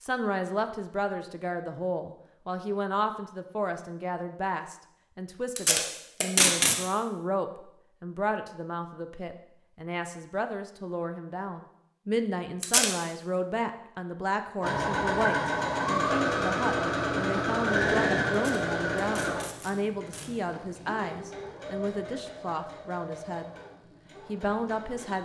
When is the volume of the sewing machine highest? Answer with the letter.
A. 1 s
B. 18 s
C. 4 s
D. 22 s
B.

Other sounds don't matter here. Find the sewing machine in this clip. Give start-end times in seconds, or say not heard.
14.6-25.2.